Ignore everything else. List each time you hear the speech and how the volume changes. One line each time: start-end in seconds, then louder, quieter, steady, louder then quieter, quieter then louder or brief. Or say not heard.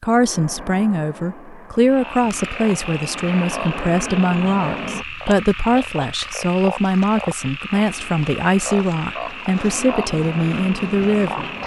0.0-11.4 steady.